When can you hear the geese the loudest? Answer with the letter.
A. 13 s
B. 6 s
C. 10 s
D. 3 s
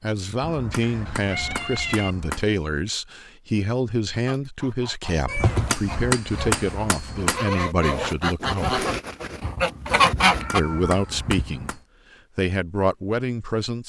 C.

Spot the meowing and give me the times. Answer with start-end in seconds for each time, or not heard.
0.7-2.1, 5.2-5.8, 9.4-11.8.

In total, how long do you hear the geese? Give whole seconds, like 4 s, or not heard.
6 s.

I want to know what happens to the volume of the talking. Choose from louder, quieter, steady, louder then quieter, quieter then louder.
steady.